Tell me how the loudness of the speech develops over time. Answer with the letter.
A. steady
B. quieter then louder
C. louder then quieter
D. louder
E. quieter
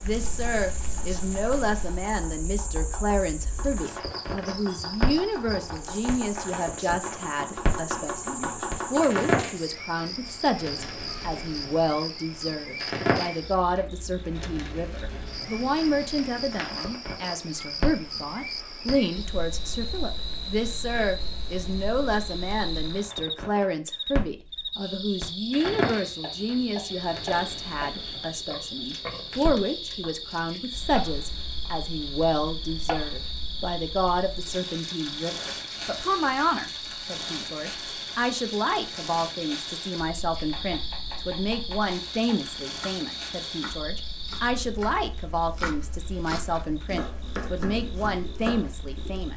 A.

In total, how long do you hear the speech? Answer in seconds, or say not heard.
49 s.